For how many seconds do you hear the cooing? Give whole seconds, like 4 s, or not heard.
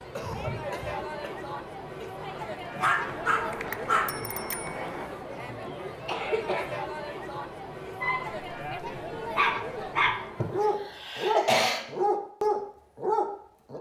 not heard.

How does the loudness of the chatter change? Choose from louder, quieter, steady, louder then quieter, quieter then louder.
steady.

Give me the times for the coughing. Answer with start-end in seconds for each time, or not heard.
0.1-2.0, 5.5-6.7, 10.3-11.8.